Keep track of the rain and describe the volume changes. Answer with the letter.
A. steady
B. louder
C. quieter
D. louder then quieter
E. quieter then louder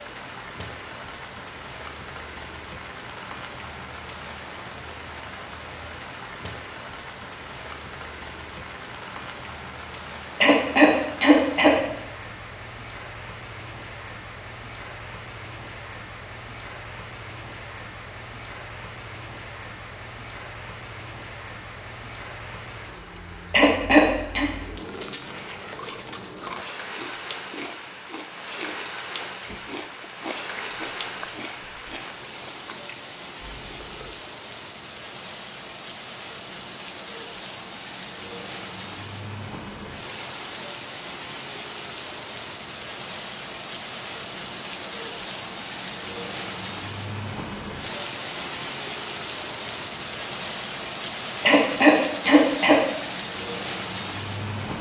B.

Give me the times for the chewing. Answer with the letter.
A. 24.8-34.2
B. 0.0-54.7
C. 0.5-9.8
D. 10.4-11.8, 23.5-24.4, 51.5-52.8
A.